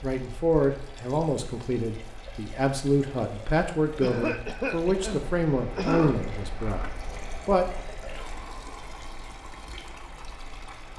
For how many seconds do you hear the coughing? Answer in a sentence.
You can hear the coughing for 2 seconds altogether.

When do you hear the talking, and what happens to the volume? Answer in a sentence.
The talking can be heard from 0.0 to 7.7 s, at a steady volume.